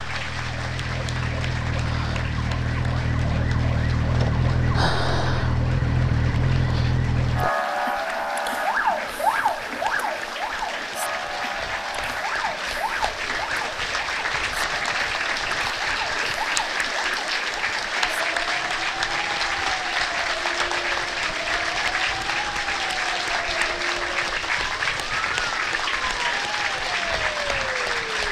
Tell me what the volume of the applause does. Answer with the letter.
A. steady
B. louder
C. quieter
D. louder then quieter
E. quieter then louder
B.